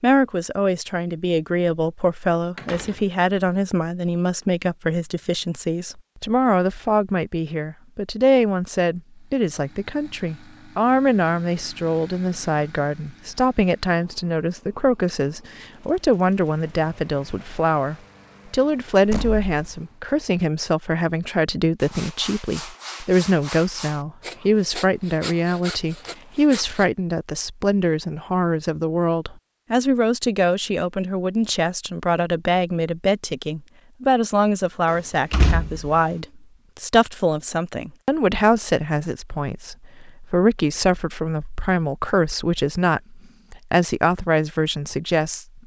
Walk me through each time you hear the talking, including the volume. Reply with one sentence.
You can hear the talking from 0.0 to 45.6 s, at a steady volume.